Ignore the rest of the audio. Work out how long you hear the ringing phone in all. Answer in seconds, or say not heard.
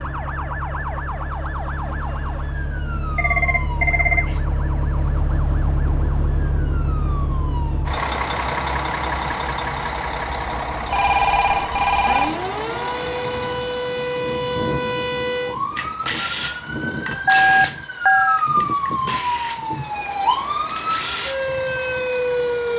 4 s.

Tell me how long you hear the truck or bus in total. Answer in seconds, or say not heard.
23 s.